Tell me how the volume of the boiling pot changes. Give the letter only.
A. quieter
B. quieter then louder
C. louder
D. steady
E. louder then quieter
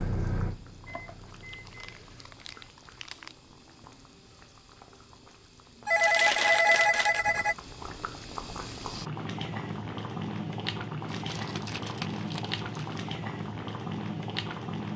C.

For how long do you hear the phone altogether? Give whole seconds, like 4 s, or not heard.
2 s.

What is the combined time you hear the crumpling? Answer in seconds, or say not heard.
6 s.